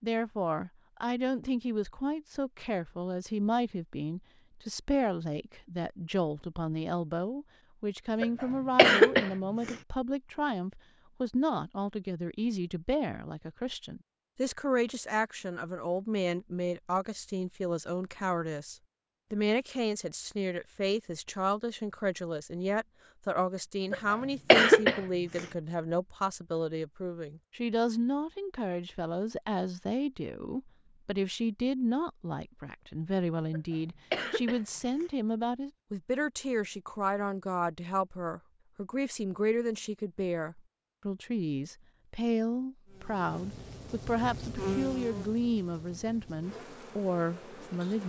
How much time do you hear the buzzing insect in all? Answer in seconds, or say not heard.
5 s.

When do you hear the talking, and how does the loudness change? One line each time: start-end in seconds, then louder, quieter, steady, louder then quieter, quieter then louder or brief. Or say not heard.
0.0-48.0 steady.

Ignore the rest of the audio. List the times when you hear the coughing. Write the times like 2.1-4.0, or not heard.
8.2-9.8, 23.9-25.4, 33.5-35.0.